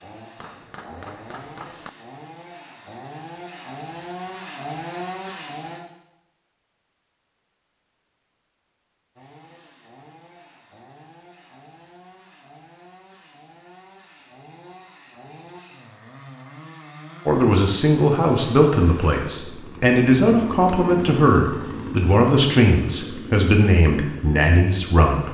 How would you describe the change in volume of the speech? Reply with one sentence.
The loudness of the speech stays about the same.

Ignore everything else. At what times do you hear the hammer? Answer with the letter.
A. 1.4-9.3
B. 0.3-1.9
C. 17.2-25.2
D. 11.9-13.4
B.